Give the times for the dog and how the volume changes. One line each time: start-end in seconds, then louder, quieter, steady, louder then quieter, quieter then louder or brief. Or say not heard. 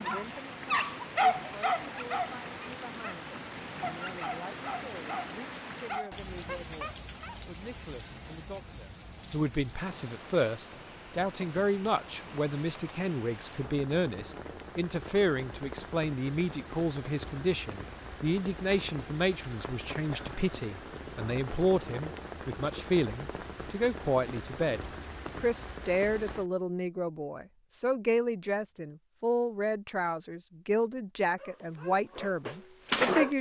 0.0-7.4 quieter
31.4-33.3 brief.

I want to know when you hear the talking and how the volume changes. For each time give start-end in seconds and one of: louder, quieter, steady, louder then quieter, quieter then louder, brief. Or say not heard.
0.0-33.3 louder.